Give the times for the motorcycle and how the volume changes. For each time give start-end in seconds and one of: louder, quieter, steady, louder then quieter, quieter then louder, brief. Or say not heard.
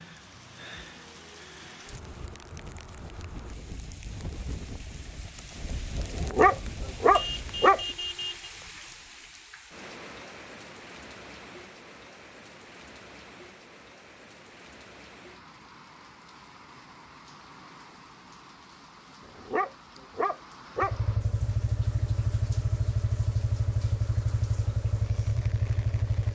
20.8-26.3 steady.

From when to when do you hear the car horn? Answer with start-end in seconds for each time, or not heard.
7.1-8.5.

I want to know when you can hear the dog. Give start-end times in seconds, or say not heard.
6.1-7.8, 19.2-20.9.